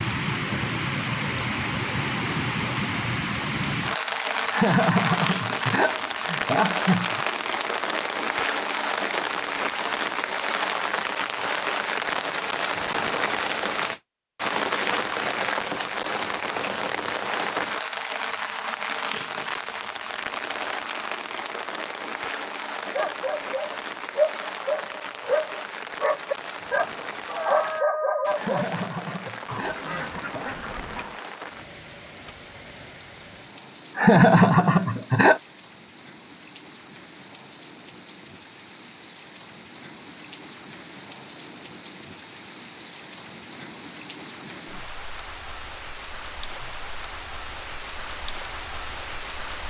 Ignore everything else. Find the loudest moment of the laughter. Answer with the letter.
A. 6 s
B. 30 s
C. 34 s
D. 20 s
C.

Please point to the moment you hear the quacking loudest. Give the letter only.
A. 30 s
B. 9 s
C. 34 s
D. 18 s
A.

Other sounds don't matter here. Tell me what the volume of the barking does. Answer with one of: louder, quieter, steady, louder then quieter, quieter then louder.
steady.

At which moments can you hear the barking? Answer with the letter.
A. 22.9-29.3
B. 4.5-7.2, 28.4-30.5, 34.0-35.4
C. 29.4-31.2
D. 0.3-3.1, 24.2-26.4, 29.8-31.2
A.